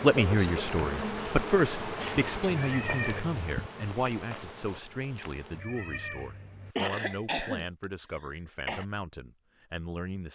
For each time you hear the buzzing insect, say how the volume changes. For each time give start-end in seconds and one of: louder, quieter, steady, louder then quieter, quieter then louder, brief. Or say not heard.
0.0-5.6 quieter.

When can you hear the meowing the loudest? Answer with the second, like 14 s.
3 s.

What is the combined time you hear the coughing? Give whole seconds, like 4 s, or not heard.
2 s.